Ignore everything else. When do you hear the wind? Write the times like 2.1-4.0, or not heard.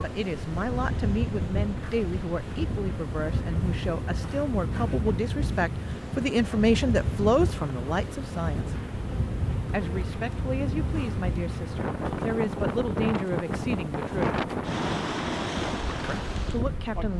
0.0-17.1.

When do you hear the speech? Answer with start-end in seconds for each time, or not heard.
0.0-8.8, 9.7-14.4, 16.1-17.1.